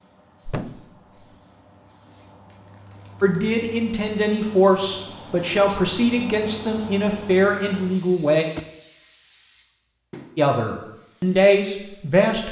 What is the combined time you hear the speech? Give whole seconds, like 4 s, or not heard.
7 s.